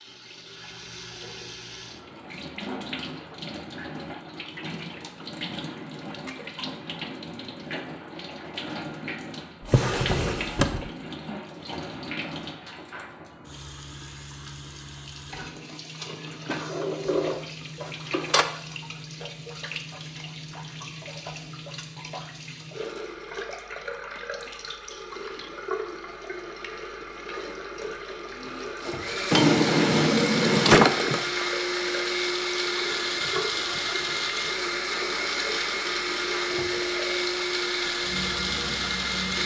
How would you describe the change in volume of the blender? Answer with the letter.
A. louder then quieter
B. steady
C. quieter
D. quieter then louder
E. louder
B.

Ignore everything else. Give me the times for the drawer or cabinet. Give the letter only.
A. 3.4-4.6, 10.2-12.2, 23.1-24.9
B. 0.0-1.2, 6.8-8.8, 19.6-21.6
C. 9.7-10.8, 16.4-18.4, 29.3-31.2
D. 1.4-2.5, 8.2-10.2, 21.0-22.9
C.